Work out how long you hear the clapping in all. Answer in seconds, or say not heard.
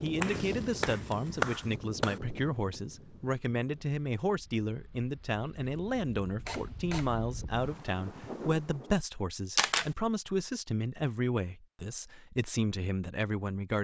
2 s.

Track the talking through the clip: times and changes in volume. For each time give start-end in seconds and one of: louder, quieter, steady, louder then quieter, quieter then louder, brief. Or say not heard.
0.0-13.7 steady.